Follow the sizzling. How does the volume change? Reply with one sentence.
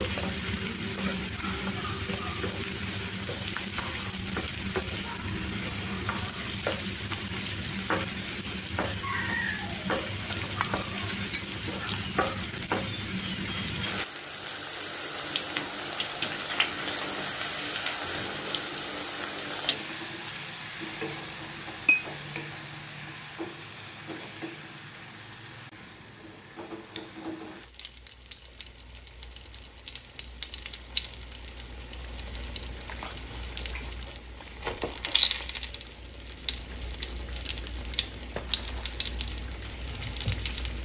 The loudness of the sizzling goes down, then up.